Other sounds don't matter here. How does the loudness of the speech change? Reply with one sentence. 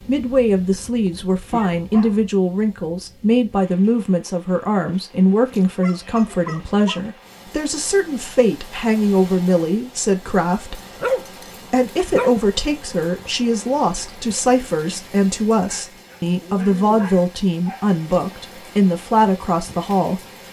The loudness of the speech stays about the same.